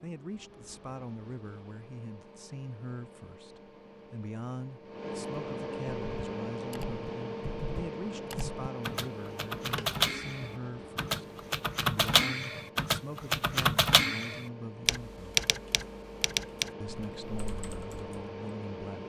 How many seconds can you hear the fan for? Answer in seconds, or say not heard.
19 s.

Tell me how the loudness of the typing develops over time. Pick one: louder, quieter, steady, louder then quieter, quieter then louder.
louder then quieter.